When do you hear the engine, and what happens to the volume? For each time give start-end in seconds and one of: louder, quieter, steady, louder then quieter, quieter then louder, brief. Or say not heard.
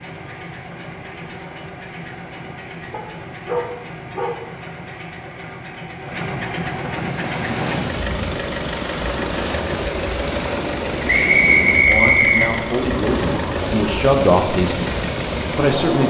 0.0-16.0 louder.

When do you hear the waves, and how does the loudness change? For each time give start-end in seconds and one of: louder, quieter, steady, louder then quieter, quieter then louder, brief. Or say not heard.
6.7-16.0 steady.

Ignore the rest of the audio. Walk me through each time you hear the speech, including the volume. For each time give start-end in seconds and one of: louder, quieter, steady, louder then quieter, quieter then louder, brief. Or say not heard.
11.8-16.0 louder then quieter.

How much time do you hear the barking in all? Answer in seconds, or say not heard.
3 s.